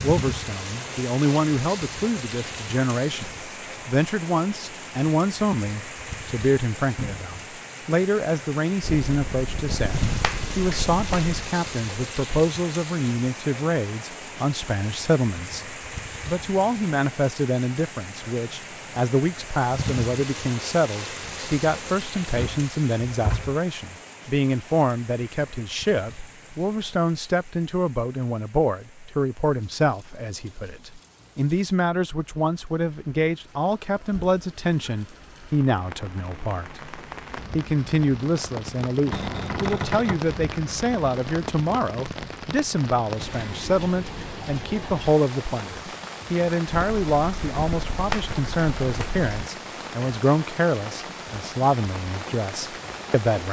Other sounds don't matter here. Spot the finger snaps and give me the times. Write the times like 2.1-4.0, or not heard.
8.8-11.5, 46.7-49.5.